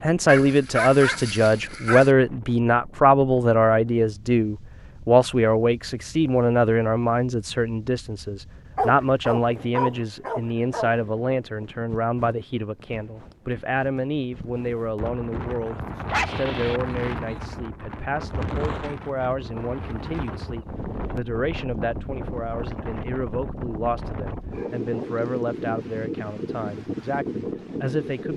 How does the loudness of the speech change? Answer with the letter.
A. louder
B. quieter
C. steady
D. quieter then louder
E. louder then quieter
B.